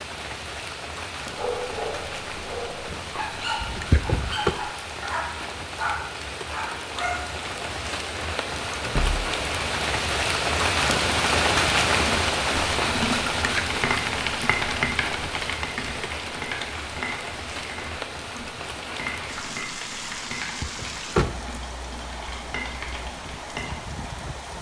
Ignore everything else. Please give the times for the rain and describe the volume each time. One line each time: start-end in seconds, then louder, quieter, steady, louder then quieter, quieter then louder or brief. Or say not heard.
0.0-24.5 louder then quieter.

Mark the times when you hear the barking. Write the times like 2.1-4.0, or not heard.
1.4-7.2.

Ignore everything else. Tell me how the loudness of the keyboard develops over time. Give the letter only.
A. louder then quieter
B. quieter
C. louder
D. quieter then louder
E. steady
B.